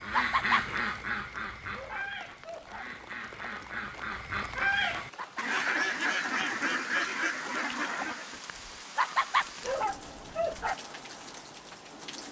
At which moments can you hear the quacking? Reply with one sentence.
The quacking can be heard from 0.0 to 8.4 s.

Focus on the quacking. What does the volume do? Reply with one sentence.
The loudness of the quacking goes down, then up.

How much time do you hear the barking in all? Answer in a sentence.
You can hear the barking for 2 seconds altogether.